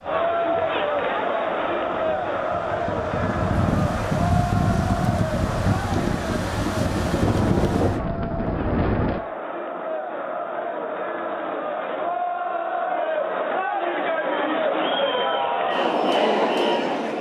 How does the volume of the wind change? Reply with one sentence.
The volume of the wind goes up.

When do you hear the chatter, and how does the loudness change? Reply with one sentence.
The chatter can be heard from 0.0 to 17.1 s, getting quieter then louder.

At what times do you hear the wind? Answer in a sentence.
You can hear the wind from 0.0 to 9.2 s.